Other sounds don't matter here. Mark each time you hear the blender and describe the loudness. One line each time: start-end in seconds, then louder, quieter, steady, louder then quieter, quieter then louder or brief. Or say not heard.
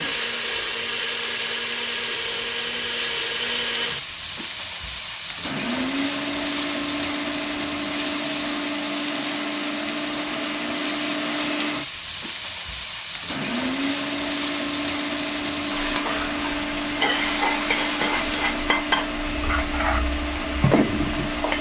0.0-21.5 steady.